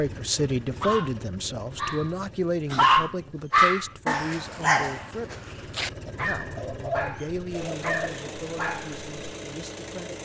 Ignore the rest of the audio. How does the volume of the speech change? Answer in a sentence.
The loudness of the speech goes down.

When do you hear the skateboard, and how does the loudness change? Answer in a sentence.
The skateboard can't be heard in this clip.